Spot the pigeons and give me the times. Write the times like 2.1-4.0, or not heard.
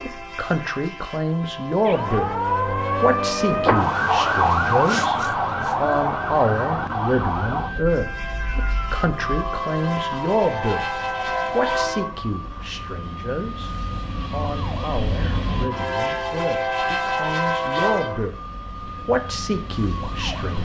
not heard.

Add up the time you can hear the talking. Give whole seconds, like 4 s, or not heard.
18 s.